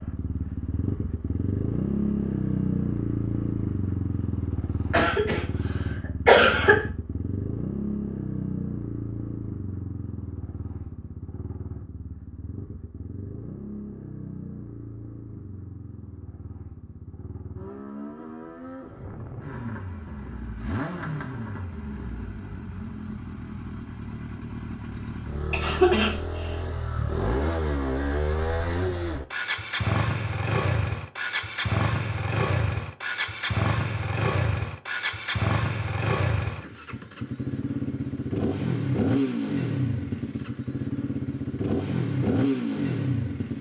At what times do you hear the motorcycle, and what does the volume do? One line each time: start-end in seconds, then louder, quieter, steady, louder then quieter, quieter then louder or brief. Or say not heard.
0.0-43.5 quieter then louder.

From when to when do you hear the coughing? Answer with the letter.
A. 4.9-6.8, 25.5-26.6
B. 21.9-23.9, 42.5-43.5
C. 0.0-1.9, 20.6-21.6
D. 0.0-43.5
A.